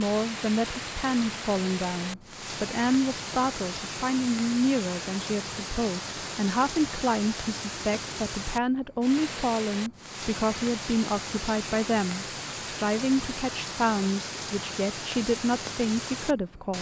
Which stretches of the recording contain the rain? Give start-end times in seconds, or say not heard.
0.0-16.7.